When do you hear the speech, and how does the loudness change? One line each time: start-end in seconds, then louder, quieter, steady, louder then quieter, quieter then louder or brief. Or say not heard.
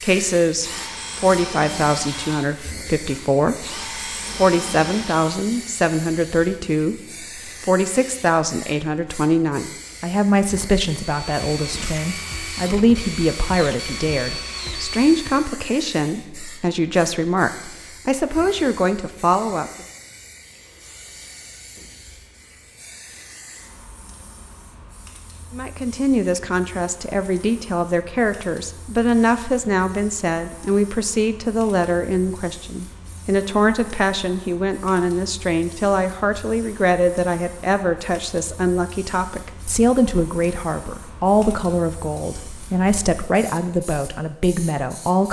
0.0-19.7 steady
25.5-45.2 steady.